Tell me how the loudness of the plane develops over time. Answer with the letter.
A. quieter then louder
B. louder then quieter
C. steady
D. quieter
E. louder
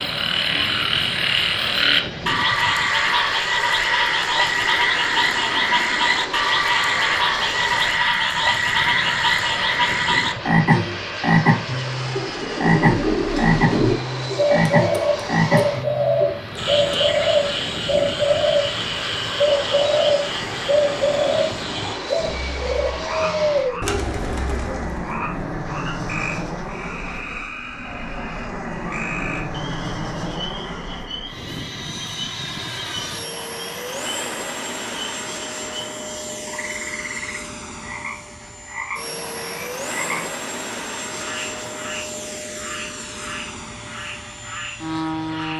C.